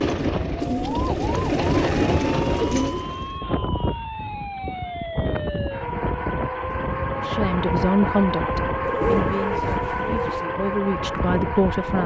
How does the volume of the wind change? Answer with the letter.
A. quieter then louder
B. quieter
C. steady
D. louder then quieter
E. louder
C.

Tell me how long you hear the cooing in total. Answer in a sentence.
You can hear the cooing for 4 seconds altogether.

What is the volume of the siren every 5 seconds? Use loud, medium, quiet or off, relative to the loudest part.
medium, loud, loud.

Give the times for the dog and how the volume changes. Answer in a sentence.
The dog can't be heard in this clip.